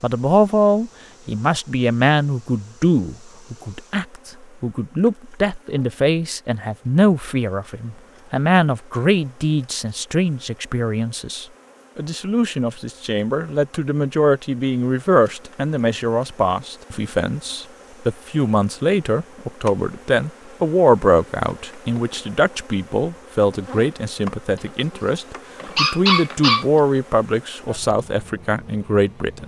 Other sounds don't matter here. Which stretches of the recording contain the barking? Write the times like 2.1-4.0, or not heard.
25.1-26.6.